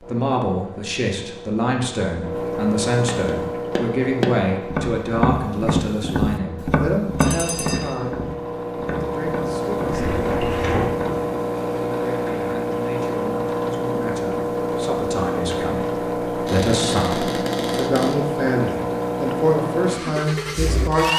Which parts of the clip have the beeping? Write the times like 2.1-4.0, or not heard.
7.2-8.0.